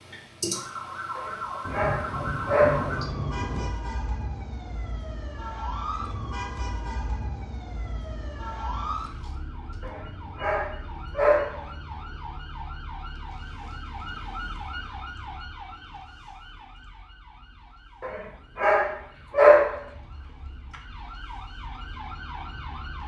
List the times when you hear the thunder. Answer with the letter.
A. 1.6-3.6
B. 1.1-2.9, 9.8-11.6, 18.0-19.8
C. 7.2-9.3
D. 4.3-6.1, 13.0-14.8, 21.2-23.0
A.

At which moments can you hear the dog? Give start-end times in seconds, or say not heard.
1.1-2.9, 9.8-11.6, 18.0-19.8.